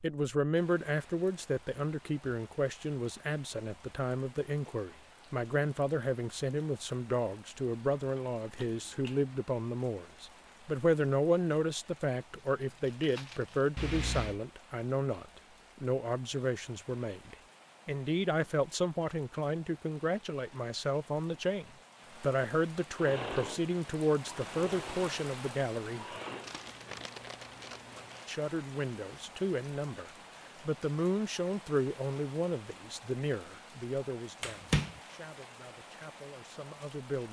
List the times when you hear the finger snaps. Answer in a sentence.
The finger snaps can be heard from 8.0 to 9.2 s, from 13.8 to 14.4 s and from 34.4 to 34.9 s.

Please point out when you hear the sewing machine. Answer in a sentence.
The sewing machine can be heard from 22.9 to 26.5 s.